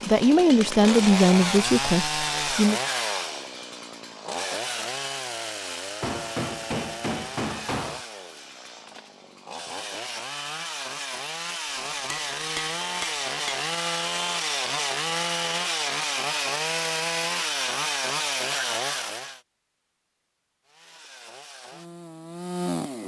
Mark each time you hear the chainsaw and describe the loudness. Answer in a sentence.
The chainsaw can be heard from 0.0 to 19.4 s, getting quieter then louder; and briefly from 20.6 to 23.0 s.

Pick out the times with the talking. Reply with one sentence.
The talking can be heard from 0.0 to 2.8 s.